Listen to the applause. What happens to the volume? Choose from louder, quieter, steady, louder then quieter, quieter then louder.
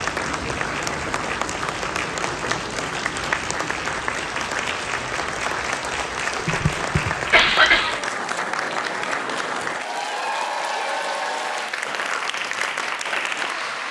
steady.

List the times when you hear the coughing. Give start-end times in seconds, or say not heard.
6.3-8.0.